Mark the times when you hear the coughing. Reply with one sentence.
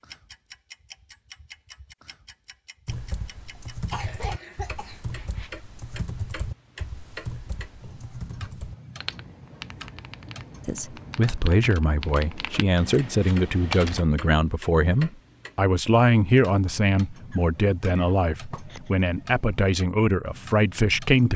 The coughing can be heard from 3.5 to 5.0 s and from 17.3 to 18.9 s.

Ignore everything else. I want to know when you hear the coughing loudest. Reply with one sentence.
The loudest moment of the coughing is at 4 seconds.